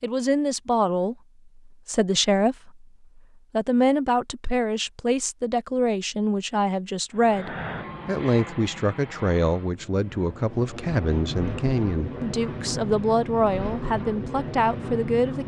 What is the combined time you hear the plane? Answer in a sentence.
You can hear the plane for 8 seconds altogether.